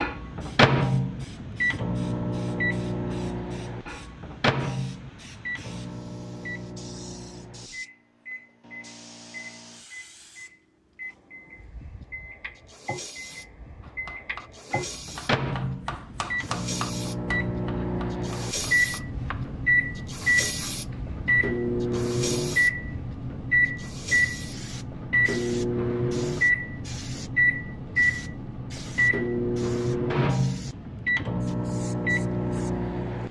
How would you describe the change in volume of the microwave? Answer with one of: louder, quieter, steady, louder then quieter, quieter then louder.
quieter then louder.